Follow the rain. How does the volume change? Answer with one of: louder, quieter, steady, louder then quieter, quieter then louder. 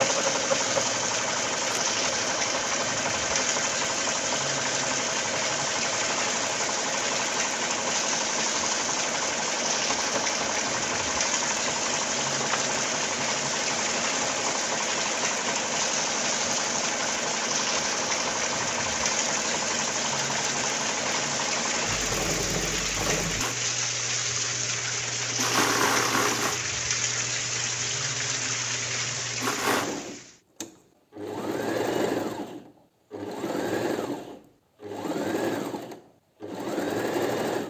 steady.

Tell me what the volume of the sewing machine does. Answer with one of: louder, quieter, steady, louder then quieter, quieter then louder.
steady.